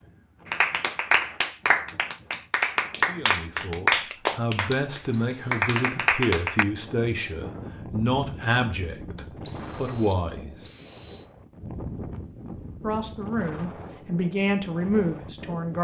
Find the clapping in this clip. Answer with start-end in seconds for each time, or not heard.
0.5-6.7.